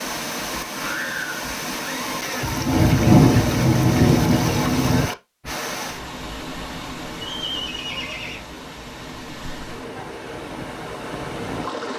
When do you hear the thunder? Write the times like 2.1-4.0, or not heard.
2.4-5.0.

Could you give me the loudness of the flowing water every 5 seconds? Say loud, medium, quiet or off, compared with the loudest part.
loud, medium, loud.